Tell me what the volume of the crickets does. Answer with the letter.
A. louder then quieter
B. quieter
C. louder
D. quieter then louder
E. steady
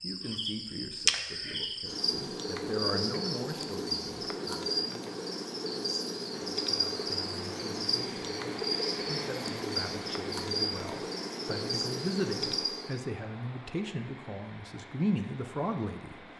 E.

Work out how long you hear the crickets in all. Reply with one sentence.
The crickets can be heard for 13 seconds in total.